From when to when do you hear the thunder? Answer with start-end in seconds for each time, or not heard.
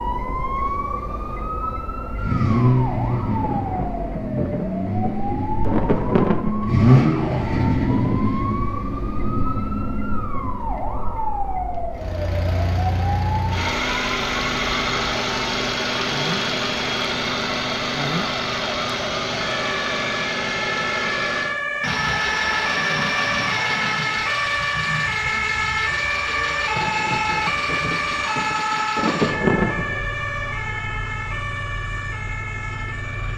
3.4-8.3, 26.8-30.0.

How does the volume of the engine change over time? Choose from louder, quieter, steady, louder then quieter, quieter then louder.
quieter.